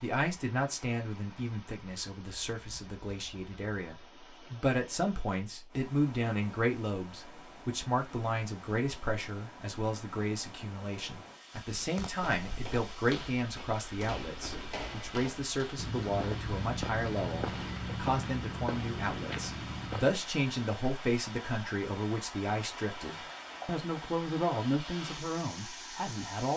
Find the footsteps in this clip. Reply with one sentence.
The footsteps can be heard from 11.7 to 20.2 s.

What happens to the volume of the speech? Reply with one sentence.
The volume of the speech stays about the same.